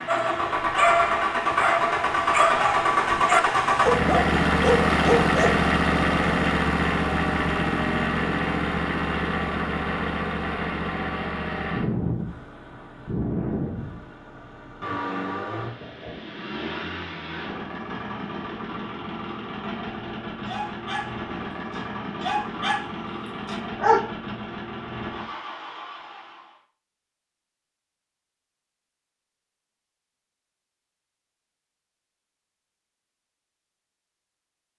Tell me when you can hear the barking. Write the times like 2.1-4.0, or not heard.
0.1-5.5, 20.4-24.0.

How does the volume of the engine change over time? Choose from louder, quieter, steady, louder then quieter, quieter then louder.
quieter.